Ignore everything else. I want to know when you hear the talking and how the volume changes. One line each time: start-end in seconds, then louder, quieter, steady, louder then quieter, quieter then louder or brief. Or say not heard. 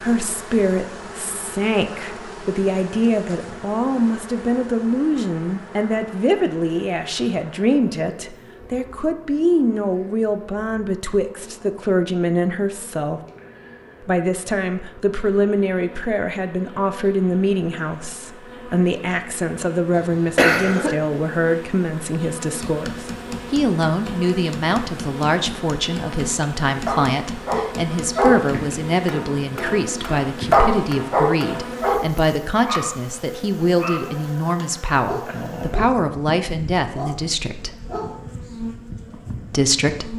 0.0-13.2 steady
14.0-37.8 steady
39.5-40.1 brief.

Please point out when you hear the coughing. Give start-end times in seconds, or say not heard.
19.9-20.9.